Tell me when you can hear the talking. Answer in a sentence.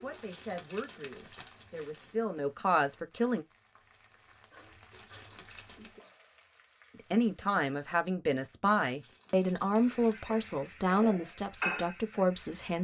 You can hear the talking from 0.0 to 3.5 s and from 7.1 to 12.7 s.